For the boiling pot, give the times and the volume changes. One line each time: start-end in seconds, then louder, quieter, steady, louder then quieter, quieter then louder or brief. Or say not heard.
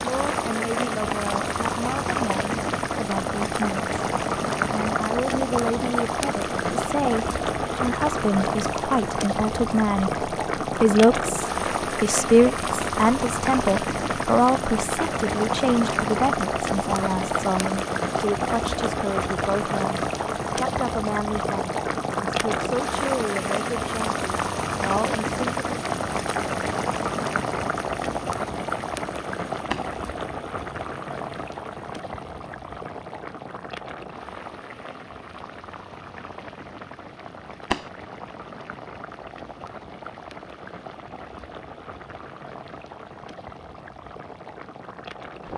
0.0-45.5 quieter.